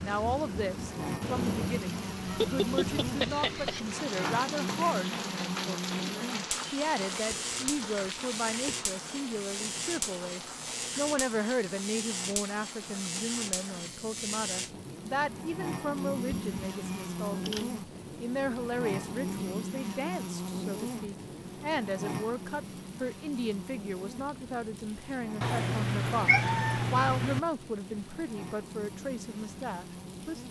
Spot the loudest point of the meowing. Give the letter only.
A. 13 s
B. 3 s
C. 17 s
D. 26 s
D.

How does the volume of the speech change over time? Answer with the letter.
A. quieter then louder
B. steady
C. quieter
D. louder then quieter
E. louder
B.